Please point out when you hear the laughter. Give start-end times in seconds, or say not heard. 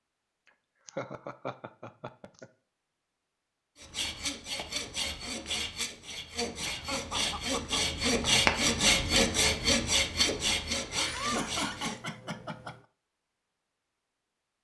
0.8-2.5, 6.7-7.8, 10.9-12.8.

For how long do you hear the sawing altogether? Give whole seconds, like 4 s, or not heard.
8 s.